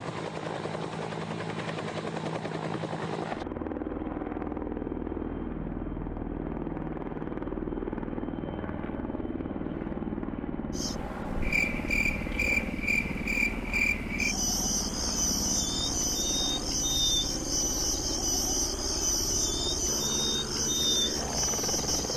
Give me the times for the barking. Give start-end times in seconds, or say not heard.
not heard.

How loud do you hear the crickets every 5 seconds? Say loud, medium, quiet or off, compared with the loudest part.
off, off, loud, loud, loud.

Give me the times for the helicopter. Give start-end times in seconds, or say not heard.
0.0-22.1.